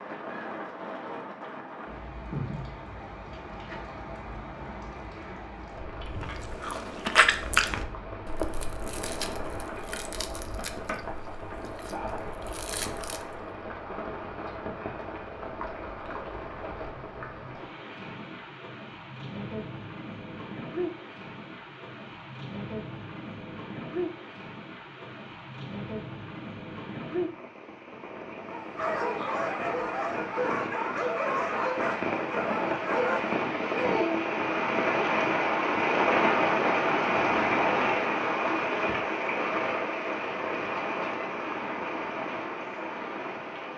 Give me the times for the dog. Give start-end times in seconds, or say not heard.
28.5-34.2.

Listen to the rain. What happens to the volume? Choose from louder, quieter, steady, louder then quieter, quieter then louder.
louder.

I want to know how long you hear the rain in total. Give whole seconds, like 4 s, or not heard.
44 s.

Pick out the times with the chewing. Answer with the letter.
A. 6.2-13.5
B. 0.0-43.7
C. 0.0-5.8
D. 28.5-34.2
A.